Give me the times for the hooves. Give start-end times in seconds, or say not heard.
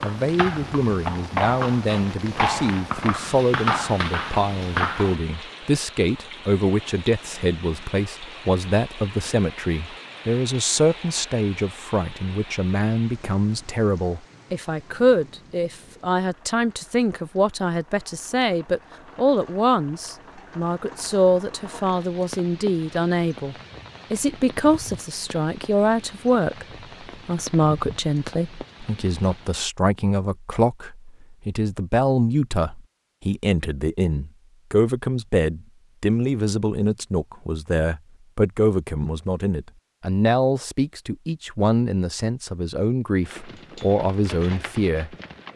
0.0-5.2, 43.2-45.5.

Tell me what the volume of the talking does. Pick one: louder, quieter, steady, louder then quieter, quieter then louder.
steady.